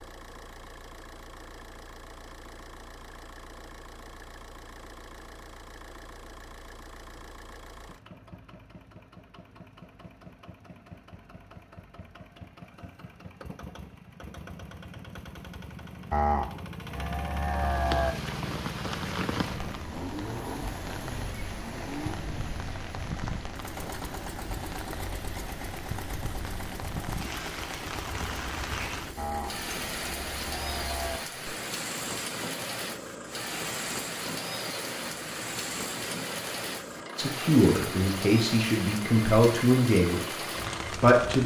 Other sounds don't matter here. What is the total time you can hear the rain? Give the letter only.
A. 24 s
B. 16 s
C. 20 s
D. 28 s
A.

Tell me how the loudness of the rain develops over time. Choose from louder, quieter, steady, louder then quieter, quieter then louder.
steady.